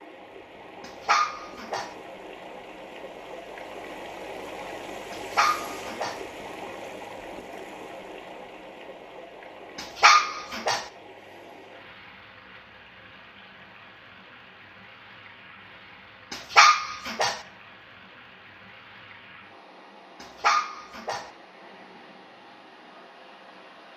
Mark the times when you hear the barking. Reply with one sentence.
The barking can be heard from 0.8 to 1.9 s, from 5.1 to 6.2 s, from 9.8 to 10.8 s, from 16.3 to 17.4 s and from 20.2 to 21.2 s.